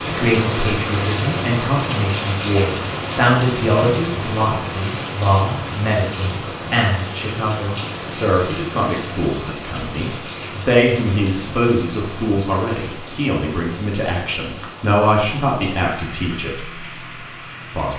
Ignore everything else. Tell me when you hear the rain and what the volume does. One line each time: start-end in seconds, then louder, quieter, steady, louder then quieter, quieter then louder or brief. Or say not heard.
0.0-17.9 quieter.